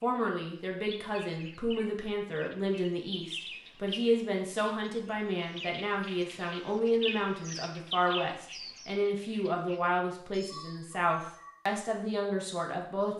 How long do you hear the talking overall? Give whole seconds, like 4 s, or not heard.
13 s.